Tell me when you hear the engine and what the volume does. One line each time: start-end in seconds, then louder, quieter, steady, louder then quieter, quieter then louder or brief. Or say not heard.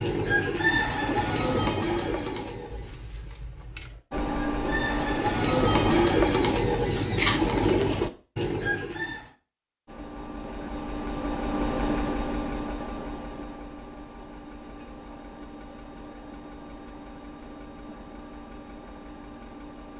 4.1-6.0 brief
9.8-19.9 quieter.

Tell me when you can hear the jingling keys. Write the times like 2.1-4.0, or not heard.
2.7-4.0.